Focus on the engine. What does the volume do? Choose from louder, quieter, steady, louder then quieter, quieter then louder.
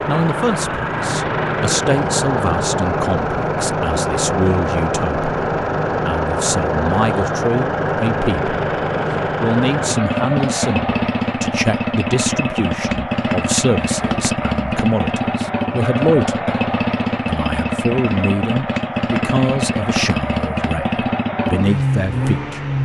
steady.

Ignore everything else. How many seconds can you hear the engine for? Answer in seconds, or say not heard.
23 s.